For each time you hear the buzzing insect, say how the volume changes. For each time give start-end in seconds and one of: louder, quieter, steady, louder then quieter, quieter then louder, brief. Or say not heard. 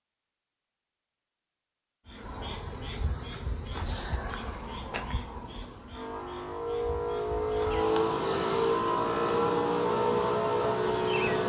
2.0-11.4 quieter then louder.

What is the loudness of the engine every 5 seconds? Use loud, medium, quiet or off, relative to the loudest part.
off, loud, loud.